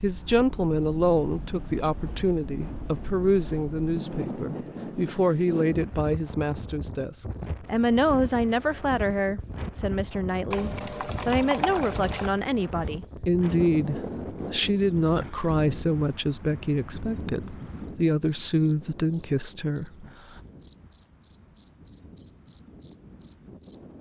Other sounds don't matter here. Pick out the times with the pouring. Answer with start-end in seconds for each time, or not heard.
10.5-12.3.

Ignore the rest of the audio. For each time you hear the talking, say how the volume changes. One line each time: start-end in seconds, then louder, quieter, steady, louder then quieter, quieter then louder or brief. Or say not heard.
0.0-20.4 steady.